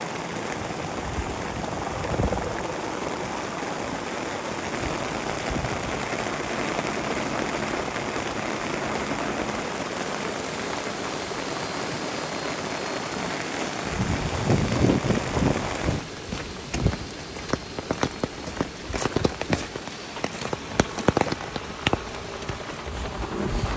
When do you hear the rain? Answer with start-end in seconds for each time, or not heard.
0.0-23.7.